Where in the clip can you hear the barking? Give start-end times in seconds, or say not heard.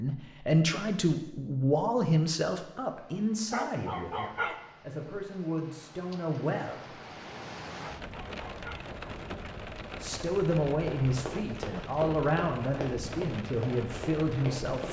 3.5-4.6, 7.8-8.8.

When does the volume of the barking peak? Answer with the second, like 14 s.
4 s.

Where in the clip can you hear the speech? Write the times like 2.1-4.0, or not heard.
0.0-6.8, 10.0-14.8.